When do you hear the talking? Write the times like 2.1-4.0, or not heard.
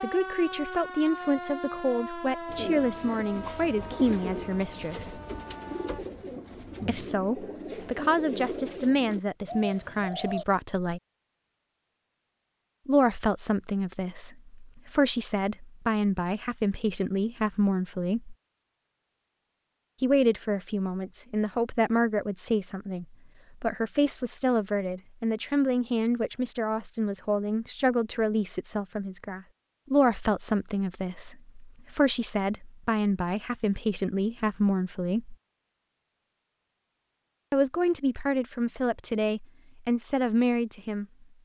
0.0-5.2, 6.8-11.0, 12.8-18.4, 20.0-35.4, 37.5-41.0.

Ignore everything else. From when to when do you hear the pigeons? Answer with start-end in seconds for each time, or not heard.
2.5-10.4.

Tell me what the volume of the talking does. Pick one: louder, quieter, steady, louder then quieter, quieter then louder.
steady.